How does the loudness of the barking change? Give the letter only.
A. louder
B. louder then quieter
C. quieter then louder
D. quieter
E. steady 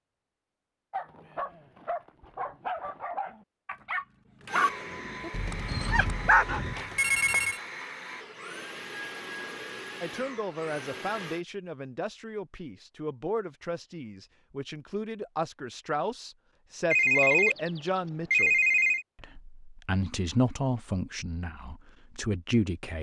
A.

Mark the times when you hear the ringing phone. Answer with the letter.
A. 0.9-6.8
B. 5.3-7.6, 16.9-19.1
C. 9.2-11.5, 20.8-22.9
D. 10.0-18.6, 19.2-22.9
B.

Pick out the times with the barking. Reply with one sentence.
The barking can be heard from 0.9 to 6.8 s.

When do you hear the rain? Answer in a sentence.
You can't hear the rain here.